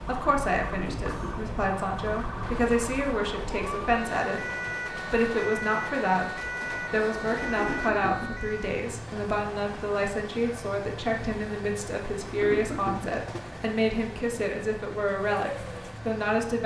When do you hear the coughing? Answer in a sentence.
You can hear the coughing from 0.7 to 1.6 s, from 7.5 to 8.4 s and from 12.2 to 13.2 s.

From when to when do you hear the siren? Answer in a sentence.
The siren can be heard from 0.0 to 8.8 s.